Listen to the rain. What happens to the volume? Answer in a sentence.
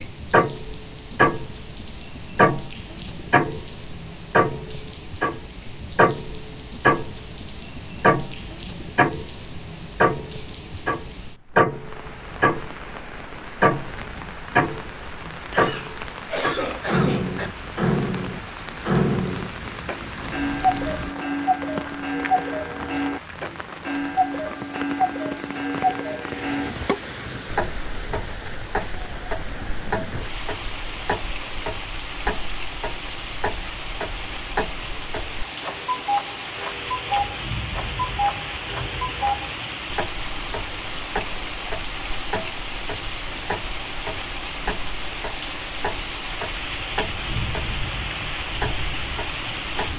The volume of the rain goes up.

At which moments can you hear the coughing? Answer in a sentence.
The coughing can be heard from 15.5 to 17.5 s.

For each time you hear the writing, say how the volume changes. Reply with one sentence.
The writing can't be heard in this clip.